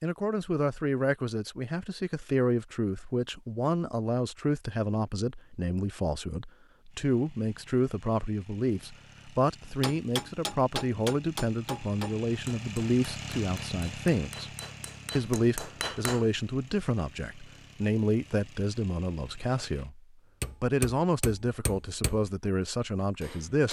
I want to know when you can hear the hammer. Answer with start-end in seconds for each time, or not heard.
9.8-16.2, 20.4-22.3, 23.1-23.6.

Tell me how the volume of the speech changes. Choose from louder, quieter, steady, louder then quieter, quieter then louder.
steady.